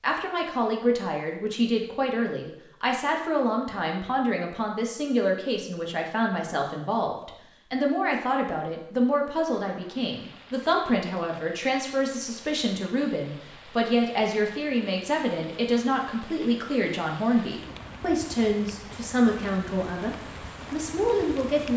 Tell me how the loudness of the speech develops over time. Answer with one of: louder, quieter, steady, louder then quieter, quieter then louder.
steady.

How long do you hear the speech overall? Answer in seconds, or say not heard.
22 s.